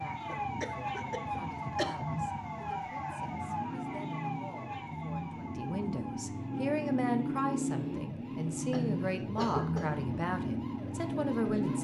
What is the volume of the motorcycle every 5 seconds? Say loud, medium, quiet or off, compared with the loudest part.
medium, loud, loud.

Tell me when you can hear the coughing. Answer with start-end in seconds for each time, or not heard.
0.2-2.0, 8.7-10.1.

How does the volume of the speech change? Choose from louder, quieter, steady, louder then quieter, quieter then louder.
louder.